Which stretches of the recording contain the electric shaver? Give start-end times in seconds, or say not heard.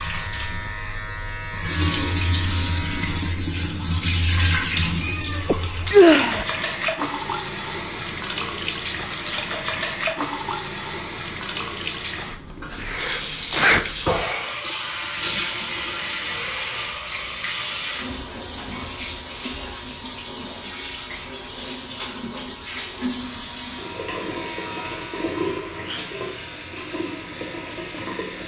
0.0-3.3, 23.2-28.4.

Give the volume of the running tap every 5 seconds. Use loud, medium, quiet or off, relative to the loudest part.
loud, loud, loud, loud, medium, medium.